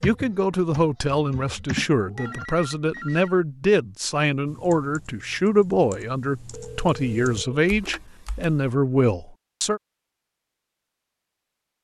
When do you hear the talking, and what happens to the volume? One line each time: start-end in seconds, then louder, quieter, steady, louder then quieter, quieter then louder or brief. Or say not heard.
0.0-9.8 steady.